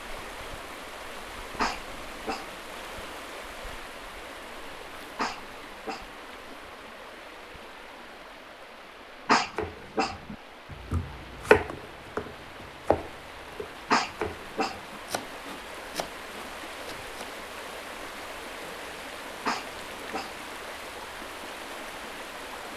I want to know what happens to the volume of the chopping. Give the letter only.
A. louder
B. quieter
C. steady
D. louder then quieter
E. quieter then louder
D.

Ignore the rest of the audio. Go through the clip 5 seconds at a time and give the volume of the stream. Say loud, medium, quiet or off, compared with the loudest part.
loud, medium, medium, loud, loud.